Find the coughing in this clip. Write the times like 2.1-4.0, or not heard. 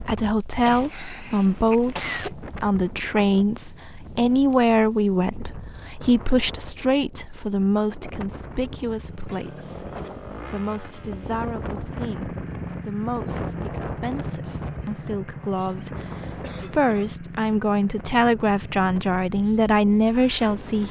0.7-2.4, 9.2-10.1, 16.4-17.1.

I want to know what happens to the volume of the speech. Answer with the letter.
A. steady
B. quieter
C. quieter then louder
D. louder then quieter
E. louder
C.